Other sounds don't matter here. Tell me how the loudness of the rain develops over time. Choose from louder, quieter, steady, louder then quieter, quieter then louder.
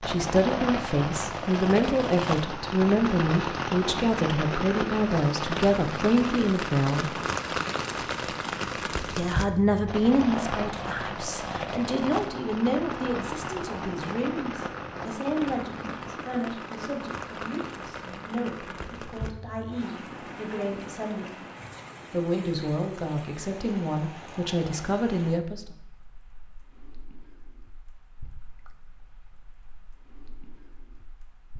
quieter.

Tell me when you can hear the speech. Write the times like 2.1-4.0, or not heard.
0.0-7.1, 9.1-21.4, 22.1-25.6.